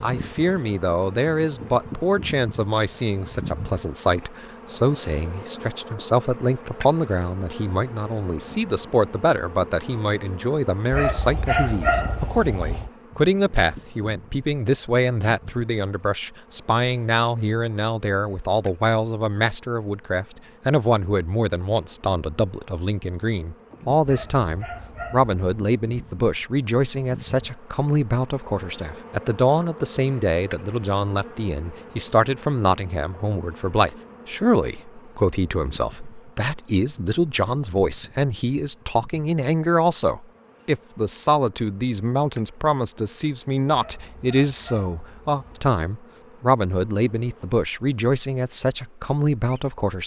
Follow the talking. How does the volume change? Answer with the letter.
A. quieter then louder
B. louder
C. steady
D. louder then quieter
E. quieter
C.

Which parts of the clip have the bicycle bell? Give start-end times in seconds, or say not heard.
not heard.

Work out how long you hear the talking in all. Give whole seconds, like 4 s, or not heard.
50 s.